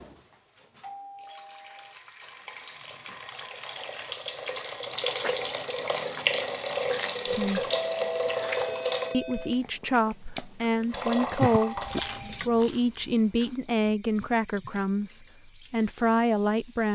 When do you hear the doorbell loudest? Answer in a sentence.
The volume of the doorbell peaks at 8 seconds.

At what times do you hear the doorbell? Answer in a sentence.
The doorbell can be heard from 0.8 to 1.9 s, from 7.7 to 9.7 s and from 11.6 to 12.4 s.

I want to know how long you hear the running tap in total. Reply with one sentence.
The running tap can be heard for 15 seconds in total.